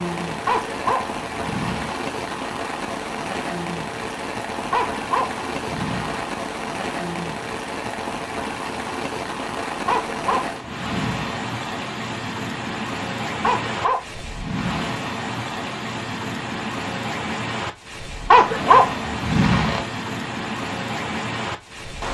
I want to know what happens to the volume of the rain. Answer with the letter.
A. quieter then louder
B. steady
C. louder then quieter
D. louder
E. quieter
B.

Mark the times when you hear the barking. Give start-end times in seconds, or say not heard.
0.5-2.0, 4.7-6.2, 9.8-11.4, 13.4-14.9, 18.3-19.8.